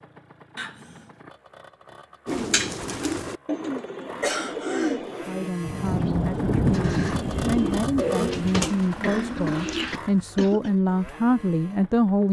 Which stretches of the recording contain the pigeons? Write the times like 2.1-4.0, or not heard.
2.2-10.0.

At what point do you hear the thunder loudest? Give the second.
7 s.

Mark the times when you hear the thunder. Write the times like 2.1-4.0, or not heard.
5.6-8.4.